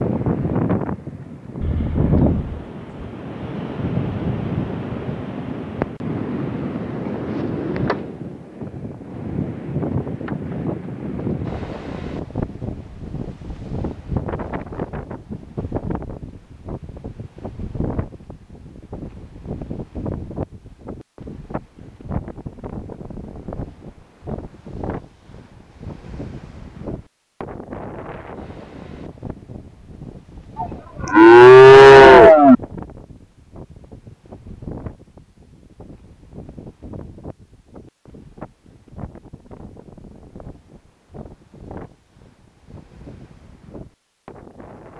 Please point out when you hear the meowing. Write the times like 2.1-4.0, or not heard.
not heard.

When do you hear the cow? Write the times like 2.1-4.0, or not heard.
1.6-3.1, 30.6-32.5.